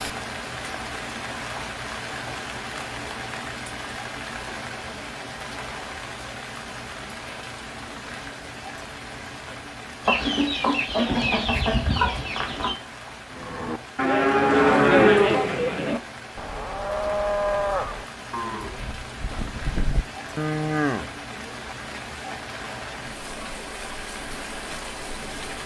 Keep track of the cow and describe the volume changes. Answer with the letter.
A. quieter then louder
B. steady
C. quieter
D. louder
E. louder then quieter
A.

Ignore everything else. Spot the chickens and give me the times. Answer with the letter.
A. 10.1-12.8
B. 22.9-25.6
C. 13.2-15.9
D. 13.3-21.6
A.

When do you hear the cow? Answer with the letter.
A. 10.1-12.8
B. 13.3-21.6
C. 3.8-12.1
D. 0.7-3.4
B.